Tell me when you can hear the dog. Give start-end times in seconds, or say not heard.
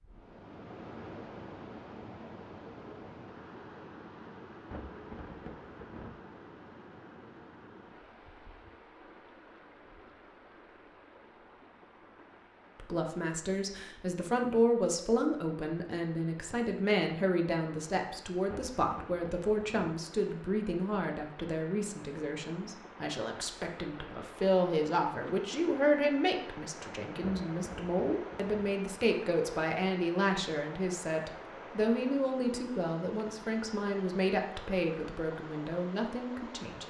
not heard.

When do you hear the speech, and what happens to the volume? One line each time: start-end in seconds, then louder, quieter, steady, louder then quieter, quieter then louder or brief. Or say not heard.
12.8-36.8 steady.